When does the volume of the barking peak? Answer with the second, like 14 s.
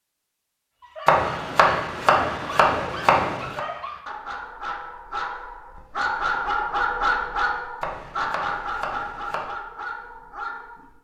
7 s.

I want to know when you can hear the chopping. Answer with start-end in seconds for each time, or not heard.
1.1-3.6, 7.8-9.4.